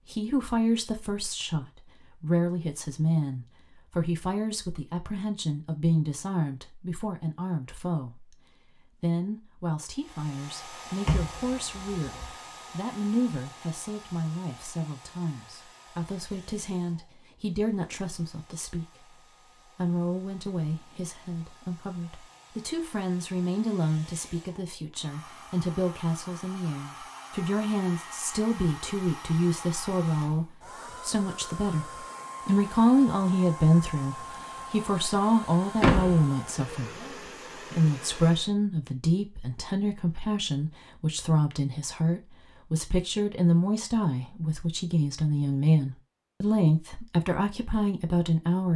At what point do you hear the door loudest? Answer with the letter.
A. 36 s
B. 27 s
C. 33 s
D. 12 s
A.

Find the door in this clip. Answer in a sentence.
You can hear the door from 11.1 to 12.3 s and from 35.8 to 36.2 s.